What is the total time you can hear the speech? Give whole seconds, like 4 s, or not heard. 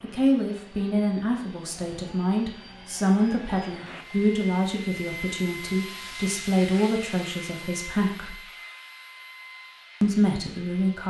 9 s.